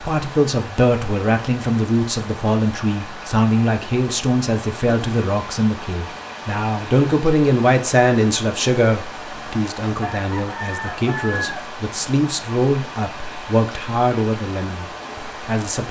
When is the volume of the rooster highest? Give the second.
11 s.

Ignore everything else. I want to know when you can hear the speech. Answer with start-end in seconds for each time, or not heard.
0.1-15.8.